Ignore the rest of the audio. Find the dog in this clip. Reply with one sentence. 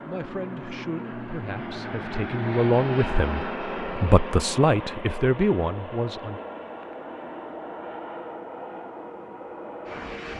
The dog can't be heard in this clip.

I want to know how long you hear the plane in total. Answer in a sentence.
You can hear the plane for 10 seconds altogether.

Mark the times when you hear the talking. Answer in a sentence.
You can hear the talking from 0.1 to 6.4 s.